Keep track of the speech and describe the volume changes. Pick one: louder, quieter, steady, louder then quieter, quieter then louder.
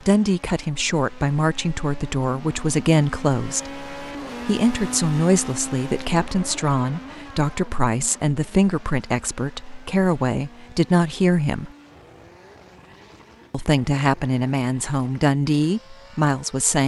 steady.